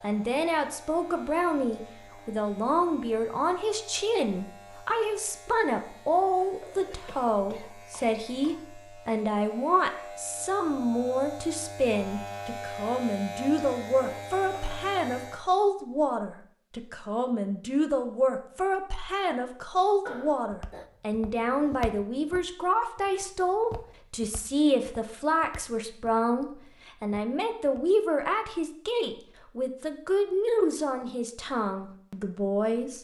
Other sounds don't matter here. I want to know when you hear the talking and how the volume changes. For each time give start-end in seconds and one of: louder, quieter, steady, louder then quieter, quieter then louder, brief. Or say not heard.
0.0-32.9 steady.